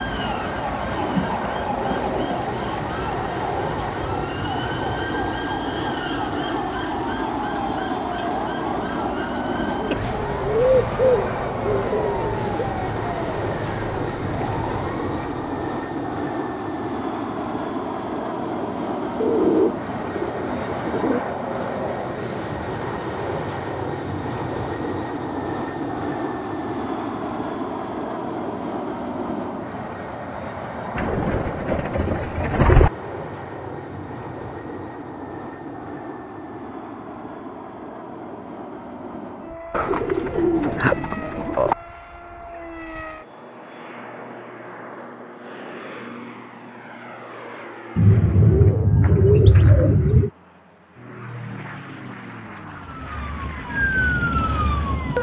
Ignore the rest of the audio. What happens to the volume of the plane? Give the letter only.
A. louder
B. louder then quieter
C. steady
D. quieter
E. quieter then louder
D.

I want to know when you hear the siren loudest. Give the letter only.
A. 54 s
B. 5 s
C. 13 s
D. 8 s
A.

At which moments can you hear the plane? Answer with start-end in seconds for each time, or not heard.
0.0-55.1.